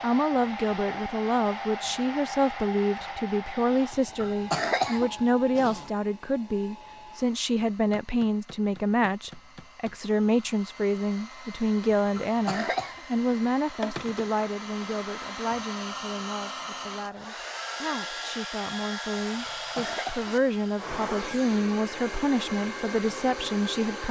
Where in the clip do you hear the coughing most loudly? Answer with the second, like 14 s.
5 s.